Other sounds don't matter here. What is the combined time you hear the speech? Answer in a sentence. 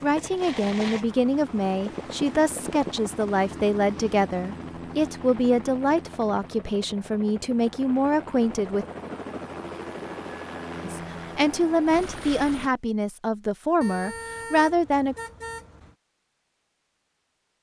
The speech can be heard for 13 seconds in total.